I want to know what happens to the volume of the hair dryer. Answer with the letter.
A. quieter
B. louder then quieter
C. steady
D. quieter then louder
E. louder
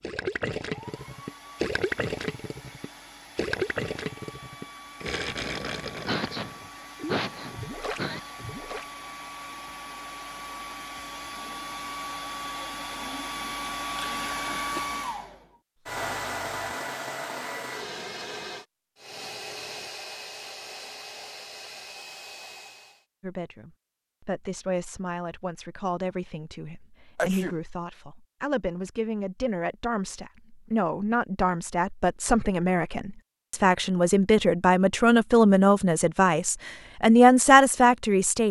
B.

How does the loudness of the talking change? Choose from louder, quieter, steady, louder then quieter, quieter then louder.
louder.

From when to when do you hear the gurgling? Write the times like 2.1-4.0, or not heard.
0.0-8.9.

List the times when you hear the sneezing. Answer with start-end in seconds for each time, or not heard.
6.0-8.3, 13.9-14.8, 27.1-27.6.